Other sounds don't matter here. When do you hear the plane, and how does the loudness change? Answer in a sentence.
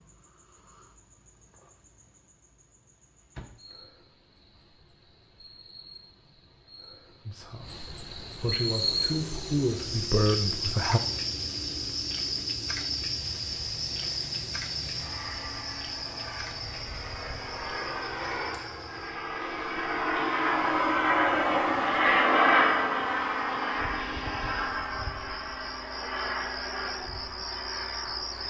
The plane can be heard from 8.3 to 28.4 s, getting louder then quieter.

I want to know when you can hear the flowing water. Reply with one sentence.
The flowing water can't be heard in this clip.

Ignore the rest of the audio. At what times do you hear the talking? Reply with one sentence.
You can hear the talking from 7.2 to 11.0 s.